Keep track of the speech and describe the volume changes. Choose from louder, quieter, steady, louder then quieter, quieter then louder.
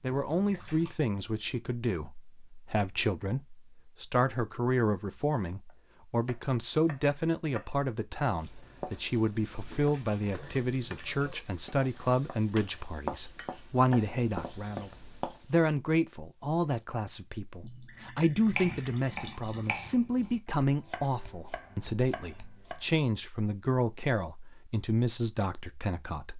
steady.